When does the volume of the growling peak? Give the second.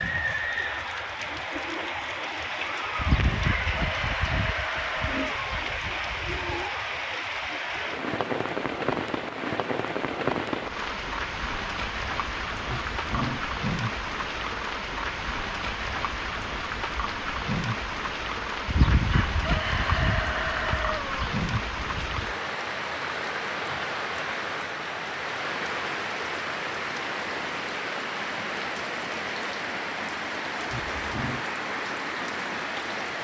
13 s.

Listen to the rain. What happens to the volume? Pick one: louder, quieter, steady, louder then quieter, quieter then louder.
steady.